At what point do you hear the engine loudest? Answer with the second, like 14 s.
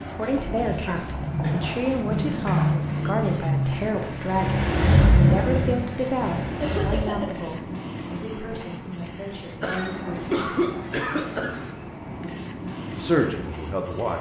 5 s.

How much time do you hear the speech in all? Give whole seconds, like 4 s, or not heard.
12 s.